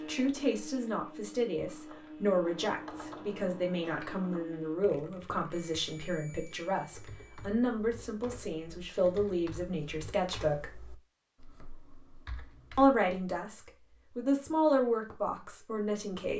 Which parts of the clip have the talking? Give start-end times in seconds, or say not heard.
0.0-10.8, 12.8-16.3.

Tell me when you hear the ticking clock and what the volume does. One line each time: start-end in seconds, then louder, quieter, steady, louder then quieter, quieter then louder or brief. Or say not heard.
not heard.